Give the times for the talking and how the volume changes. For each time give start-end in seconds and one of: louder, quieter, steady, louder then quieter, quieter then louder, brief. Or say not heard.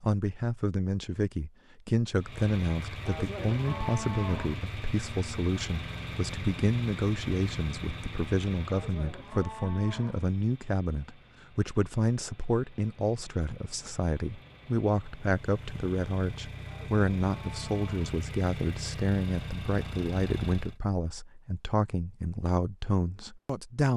0.0-23.9 steady.